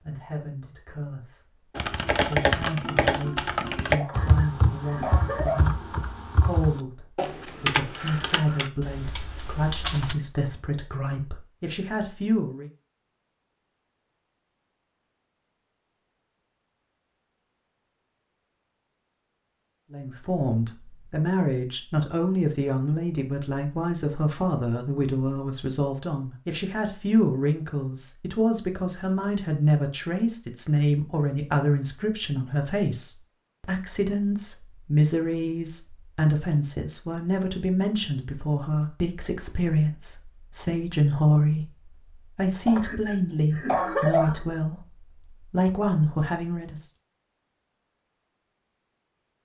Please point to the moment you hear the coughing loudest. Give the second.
44 s.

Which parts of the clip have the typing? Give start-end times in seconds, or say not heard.
1.8-10.2.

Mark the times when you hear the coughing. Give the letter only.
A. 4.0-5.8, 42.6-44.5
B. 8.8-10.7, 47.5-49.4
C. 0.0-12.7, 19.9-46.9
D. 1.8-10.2
A.